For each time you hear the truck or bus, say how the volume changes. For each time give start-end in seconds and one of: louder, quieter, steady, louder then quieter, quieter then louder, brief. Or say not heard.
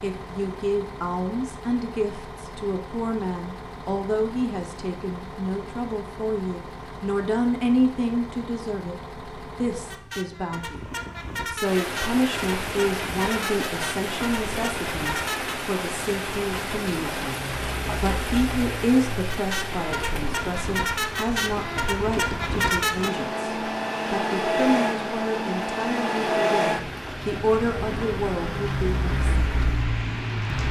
0.0-30.6 louder.